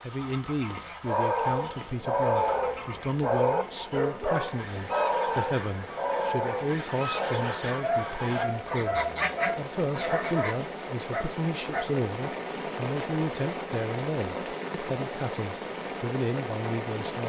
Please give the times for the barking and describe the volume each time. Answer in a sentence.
You can hear the barking from 1.1 to 11.9 s, getting quieter.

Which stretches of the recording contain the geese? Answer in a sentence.
You can hear the geese from 0.1 to 10.6 s.